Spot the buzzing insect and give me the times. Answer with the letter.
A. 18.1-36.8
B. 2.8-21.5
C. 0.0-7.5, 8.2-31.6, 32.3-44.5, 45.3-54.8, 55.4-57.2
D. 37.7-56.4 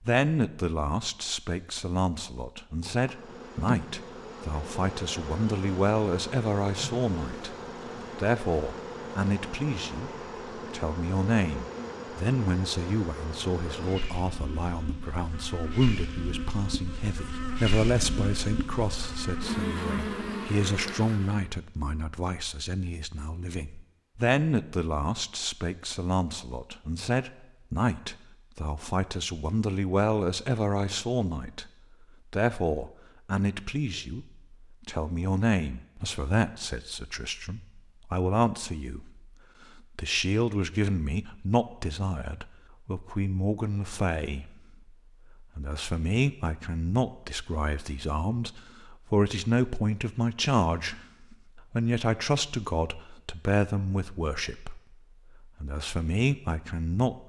B.